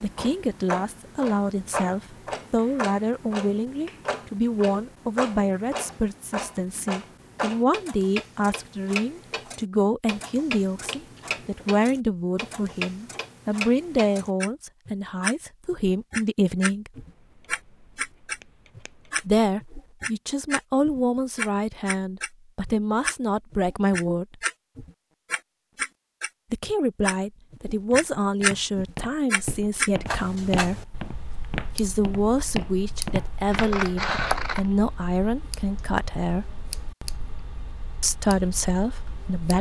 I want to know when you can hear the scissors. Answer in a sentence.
You can hear the scissors from 10.8 to 11.7 s, from 16.9 to 19.3 s and from 33.5 to 34.6 s.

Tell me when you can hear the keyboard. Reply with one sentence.
You can't hear the keyboard here.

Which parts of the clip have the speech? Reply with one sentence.
The speech can be heard from 0.0 to 16.9 s, from 19.2 to 24.4 s, from 26.5 to 30.9 s, from 31.8 to 36.5 s and from 38.0 to 39.5 s.